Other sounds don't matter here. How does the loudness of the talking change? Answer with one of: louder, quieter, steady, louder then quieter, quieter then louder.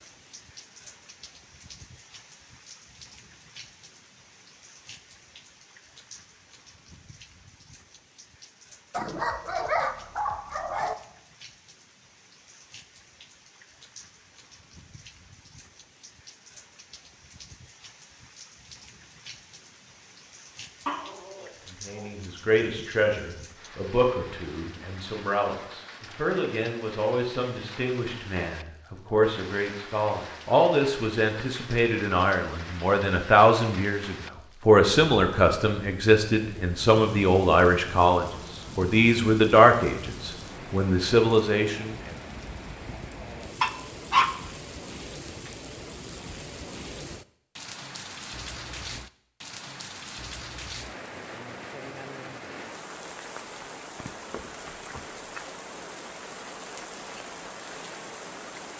louder.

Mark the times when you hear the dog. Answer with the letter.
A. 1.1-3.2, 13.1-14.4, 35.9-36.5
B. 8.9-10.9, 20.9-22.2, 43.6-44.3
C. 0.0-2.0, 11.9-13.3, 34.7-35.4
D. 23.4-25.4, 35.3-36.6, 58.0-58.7
B.